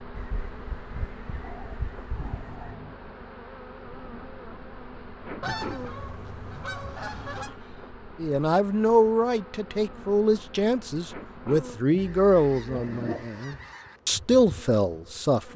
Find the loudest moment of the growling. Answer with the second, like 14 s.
13 s.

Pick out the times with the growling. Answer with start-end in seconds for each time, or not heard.
1.4-3.0, 6.8-8.0, 12.8-13.6.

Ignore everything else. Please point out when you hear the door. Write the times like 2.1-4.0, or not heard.
not heard.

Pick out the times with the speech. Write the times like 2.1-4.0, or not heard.
8.2-15.5.